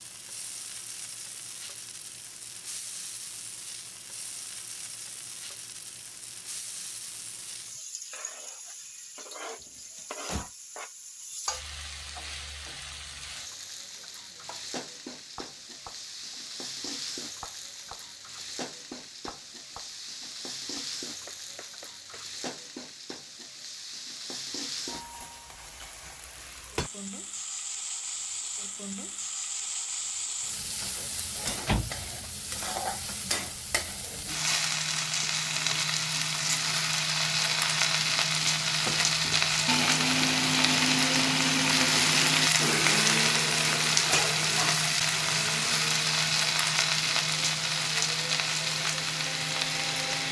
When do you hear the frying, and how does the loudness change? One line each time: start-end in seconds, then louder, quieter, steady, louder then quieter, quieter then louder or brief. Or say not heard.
0.0-50.2 louder.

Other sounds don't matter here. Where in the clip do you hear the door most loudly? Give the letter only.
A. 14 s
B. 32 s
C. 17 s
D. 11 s
B.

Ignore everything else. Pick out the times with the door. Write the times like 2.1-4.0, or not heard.
9.6-10.5, 31.4-32.3.